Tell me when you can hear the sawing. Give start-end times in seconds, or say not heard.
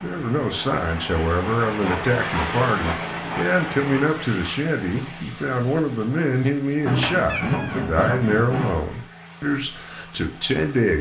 1.6-3.6, 6.8-8.8.